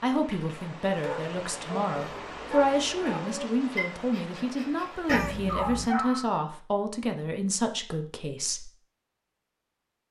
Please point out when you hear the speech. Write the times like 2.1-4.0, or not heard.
0.0-8.7.